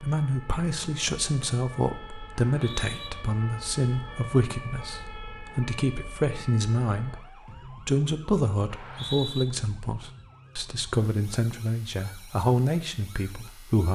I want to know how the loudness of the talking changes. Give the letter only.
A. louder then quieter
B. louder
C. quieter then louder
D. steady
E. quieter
D.